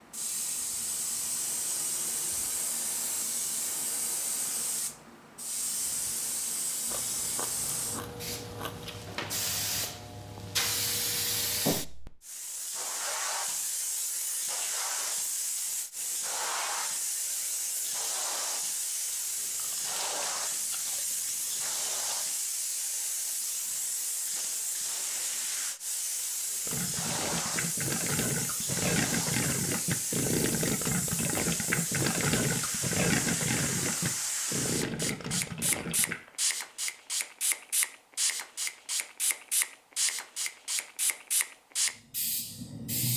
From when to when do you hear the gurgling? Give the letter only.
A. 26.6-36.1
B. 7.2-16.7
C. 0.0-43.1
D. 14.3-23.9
A.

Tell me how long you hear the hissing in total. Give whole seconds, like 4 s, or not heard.
43 s.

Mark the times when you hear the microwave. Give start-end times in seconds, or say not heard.
not heard.